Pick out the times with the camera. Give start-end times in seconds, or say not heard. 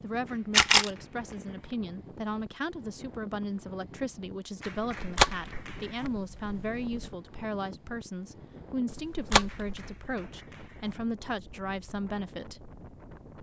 0.5-0.9, 5.0-7.0, 8.9-9.8.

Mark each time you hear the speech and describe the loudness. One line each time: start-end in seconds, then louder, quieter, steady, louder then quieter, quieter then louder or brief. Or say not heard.
0.0-12.7 steady.